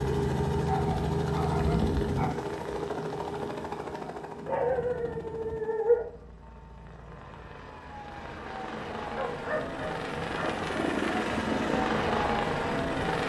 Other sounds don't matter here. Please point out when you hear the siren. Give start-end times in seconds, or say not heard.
not heard.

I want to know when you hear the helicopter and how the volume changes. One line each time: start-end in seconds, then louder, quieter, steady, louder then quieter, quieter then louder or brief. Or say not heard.
0.0-13.2 quieter then louder.